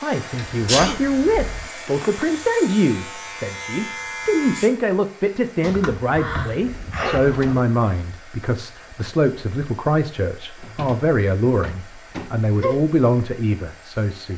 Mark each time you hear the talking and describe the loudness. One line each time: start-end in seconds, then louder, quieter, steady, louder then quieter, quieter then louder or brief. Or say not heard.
0.0-14.3 steady.